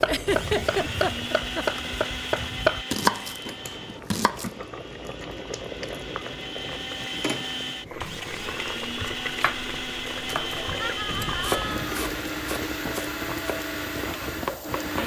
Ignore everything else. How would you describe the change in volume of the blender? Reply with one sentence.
The volume of the blender goes down, then up.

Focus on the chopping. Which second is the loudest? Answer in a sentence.
The volume of the chopping peaks at 3 seconds.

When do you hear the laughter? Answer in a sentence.
The laughter can be heard from 0.1 to 1.6 s and from 10.8 to 11.9 s.